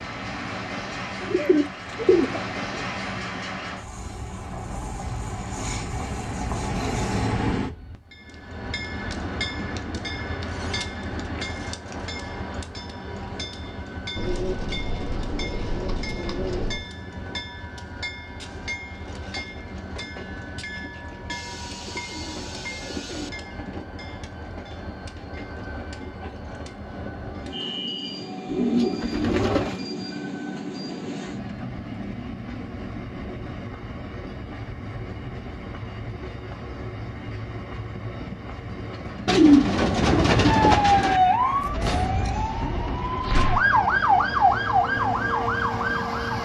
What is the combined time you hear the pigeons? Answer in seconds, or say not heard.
10 s.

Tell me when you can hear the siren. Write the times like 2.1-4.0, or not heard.
40.5-46.3.